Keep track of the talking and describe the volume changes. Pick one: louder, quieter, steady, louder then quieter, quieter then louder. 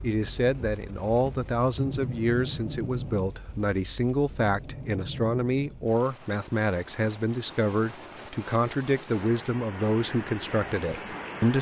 steady.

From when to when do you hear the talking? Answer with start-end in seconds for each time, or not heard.
0.0-11.5.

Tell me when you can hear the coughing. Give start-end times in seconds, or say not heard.
not heard.